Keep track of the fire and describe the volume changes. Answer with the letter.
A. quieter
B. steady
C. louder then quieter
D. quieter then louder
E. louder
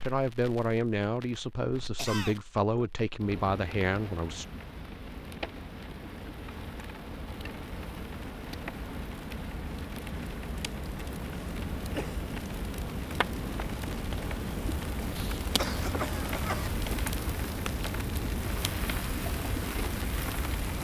E.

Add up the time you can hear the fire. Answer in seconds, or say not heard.
21 s.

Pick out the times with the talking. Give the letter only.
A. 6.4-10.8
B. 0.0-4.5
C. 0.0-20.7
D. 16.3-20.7
B.